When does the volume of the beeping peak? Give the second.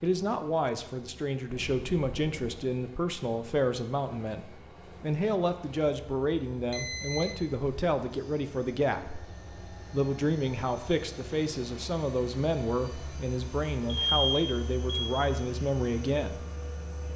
14 s.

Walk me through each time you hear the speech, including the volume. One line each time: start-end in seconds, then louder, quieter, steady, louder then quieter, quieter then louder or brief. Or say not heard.
0.0-16.4 steady.